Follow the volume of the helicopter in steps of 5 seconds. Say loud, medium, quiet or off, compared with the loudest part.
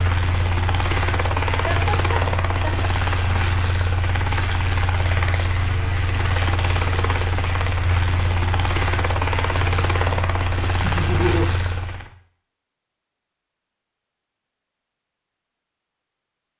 loud, loud, loud, off.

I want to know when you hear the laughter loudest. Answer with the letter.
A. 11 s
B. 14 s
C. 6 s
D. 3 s
A.